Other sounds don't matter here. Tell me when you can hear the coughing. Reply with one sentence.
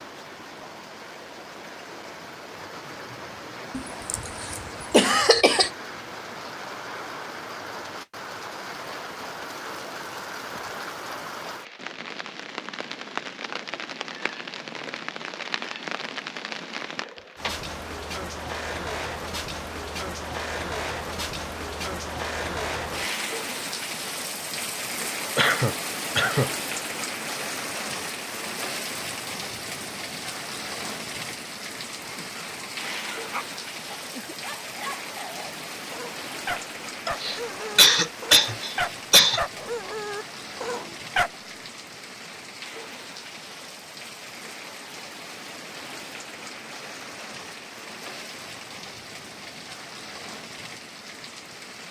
You can hear the coughing from 3.8 to 5.7 s, from 25.4 to 26.5 s and from 37.0 to 39.4 s.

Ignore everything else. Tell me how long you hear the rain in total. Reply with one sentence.
You can hear the rain for 52 seconds altogether.